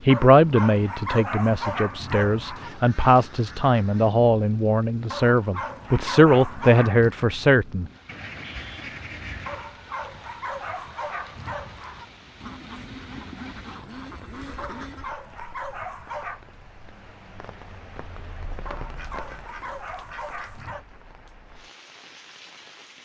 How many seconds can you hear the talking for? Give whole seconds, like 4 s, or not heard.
8 s.